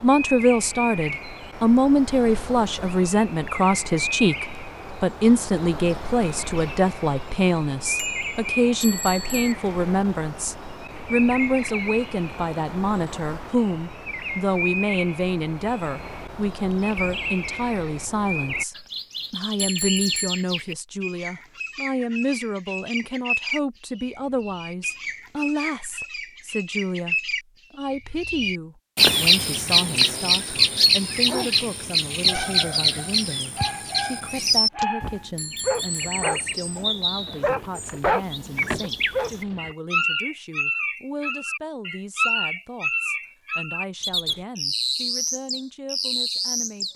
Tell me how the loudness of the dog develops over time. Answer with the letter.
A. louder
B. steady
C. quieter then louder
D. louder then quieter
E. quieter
A.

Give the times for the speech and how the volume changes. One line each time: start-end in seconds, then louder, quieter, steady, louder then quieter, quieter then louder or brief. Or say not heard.
0.0-46.9 quieter.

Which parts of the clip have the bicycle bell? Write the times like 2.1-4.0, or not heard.
8.0-9.6, 19.6-20.4, 35.4-36.4.